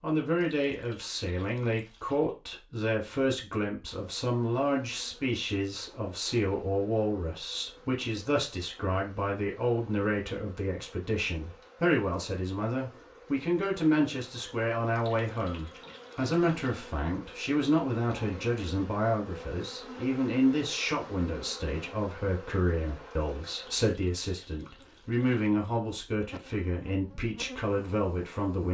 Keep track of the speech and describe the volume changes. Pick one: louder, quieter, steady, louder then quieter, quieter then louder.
steady.